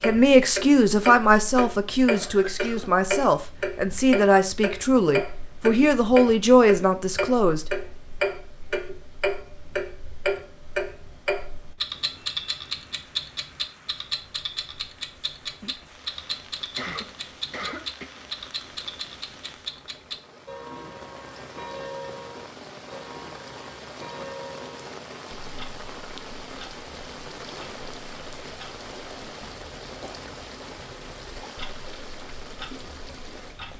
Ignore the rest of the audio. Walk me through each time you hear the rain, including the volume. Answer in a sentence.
The rain can be heard from 11.8 to 33.7 s, getting louder.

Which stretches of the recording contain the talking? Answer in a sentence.
The talking can be heard from 0.0 to 7.7 s.